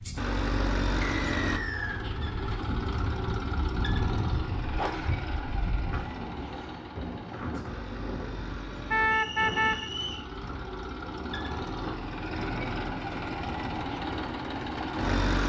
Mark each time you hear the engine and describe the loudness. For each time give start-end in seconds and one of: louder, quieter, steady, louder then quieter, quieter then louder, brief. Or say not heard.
0.0-15.4 quieter then louder.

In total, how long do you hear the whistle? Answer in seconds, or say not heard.
2 s.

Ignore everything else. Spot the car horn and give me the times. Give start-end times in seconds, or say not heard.
8.9-9.9.